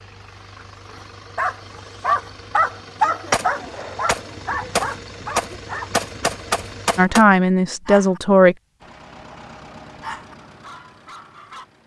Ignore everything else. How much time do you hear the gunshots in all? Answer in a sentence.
You can hear the gunshots for 4 seconds altogether.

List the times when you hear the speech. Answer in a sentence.
The speech can be heard from 7.0 to 8.6 s.